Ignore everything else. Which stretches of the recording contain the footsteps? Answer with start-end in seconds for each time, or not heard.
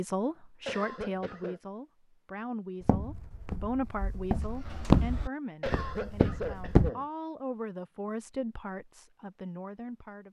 2.8-6.9.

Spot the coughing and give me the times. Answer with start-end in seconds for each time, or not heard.
0.7-1.6, 5.6-7.0.